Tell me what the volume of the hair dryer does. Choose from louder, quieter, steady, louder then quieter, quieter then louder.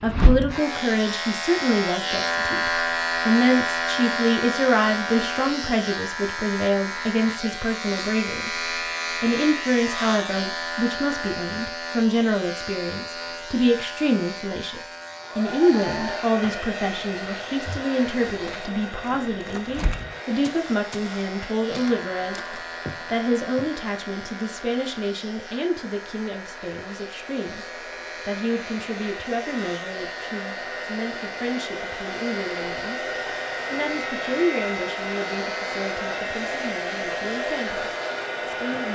quieter then louder.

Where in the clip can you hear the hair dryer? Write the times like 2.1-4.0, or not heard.
15.1-38.8.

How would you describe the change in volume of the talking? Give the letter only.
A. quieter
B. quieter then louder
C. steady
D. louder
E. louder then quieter
A.